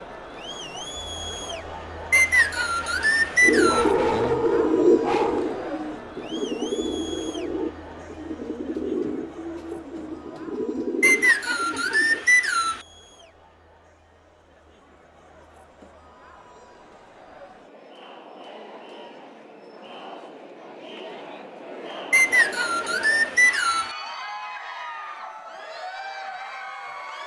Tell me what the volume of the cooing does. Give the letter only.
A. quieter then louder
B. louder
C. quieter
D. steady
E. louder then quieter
C.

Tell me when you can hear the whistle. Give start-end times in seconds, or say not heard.
2.1-3.9, 11.0-12.8, 22.1-23.9.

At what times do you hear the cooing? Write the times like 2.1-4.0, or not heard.
3.4-12.2.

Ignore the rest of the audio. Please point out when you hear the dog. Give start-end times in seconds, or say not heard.
3.5-5.6.